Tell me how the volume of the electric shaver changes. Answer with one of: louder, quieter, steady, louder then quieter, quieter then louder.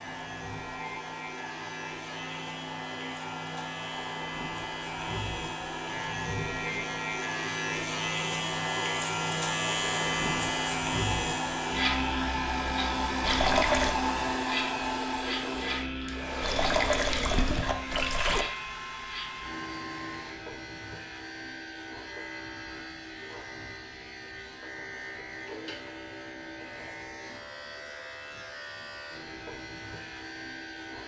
louder then quieter.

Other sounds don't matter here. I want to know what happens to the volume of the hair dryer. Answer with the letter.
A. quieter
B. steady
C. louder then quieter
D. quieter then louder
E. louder
C.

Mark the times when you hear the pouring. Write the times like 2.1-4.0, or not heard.
13.2-13.9, 16.4-18.4.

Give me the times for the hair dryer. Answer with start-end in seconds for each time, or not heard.
0.0-20.4.